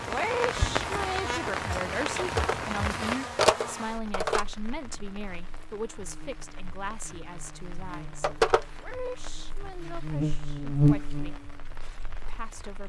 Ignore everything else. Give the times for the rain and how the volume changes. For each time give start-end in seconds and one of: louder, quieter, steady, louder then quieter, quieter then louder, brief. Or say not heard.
0.0-12.8 quieter.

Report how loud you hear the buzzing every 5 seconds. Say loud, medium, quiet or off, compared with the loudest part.
medium, quiet, loud.